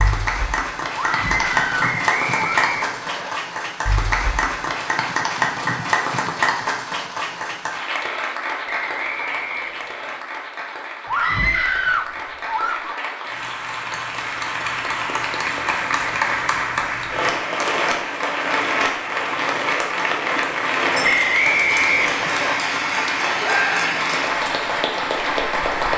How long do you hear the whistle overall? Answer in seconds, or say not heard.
5 s.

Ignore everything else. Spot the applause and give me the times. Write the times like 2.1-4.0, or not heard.
0.0-25.9.